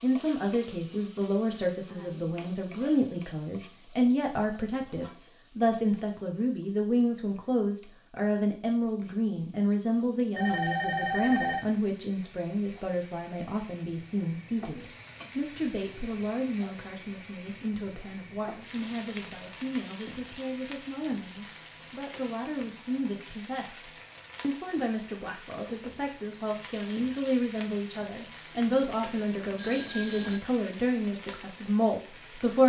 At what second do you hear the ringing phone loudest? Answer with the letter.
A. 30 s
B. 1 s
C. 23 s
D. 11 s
D.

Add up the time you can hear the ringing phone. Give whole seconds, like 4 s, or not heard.
3 s.